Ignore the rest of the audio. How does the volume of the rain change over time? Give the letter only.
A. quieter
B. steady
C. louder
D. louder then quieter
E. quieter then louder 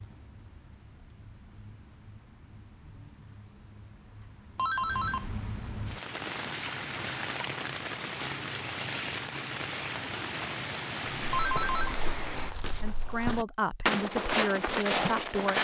C.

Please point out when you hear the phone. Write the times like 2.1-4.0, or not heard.
4.5-5.3, 11.3-11.9.